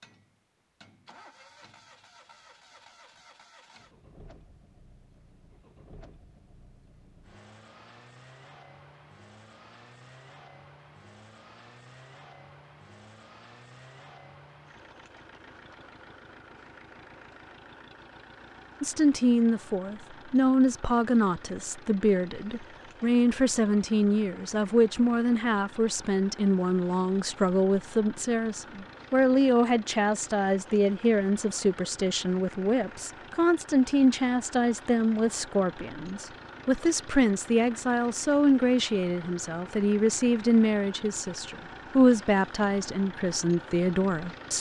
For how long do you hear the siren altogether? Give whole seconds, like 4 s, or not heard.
not heard.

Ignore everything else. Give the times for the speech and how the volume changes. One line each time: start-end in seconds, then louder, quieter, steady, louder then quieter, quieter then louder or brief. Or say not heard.
18.8-44.5 steady.